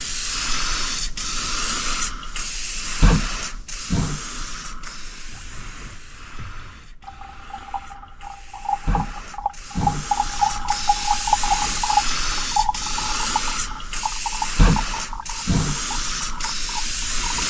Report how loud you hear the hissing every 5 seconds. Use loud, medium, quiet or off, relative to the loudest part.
loud, medium, loud, loud.